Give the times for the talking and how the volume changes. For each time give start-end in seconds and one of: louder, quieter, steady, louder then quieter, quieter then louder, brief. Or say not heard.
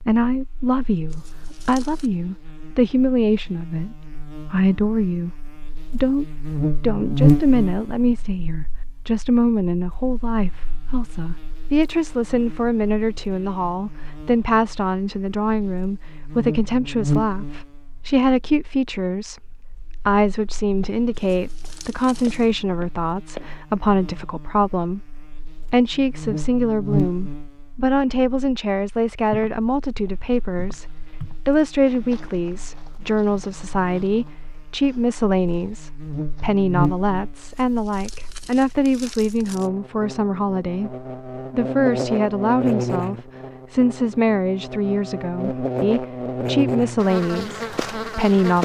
0.0-48.6 steady.